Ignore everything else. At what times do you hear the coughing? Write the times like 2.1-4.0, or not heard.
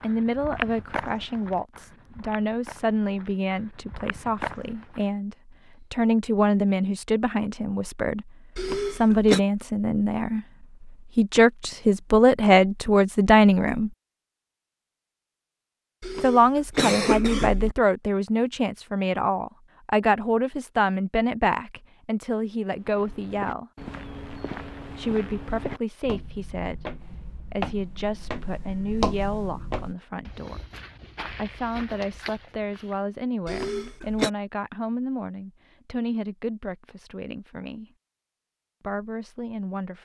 8.6-9.4, 16.0-17.8, 33.5-34.3.